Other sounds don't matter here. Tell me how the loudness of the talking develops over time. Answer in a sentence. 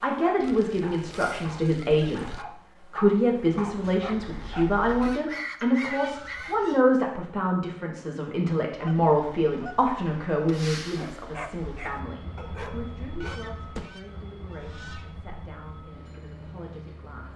The loudness of the talking goes down.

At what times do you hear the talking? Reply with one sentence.
The talking can be heard from 0.0 to 17.3 s.